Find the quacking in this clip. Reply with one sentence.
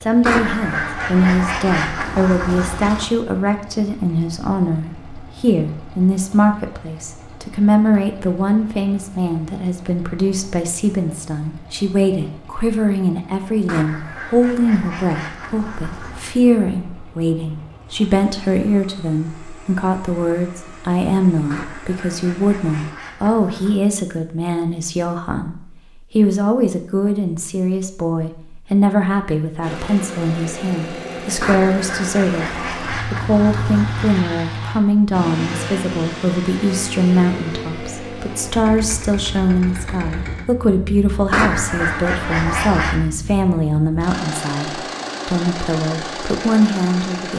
The quacking can be heard from 0.2 to 3.1 s, from 13.7 to 16.4 s, from 21.5 to 23.8 s, from 31.4 to 34.2 s and from 41.3 to 43.0 s.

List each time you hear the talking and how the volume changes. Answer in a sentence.
You can hear the talking from 0.0 to 47.3 s, at a steady volume.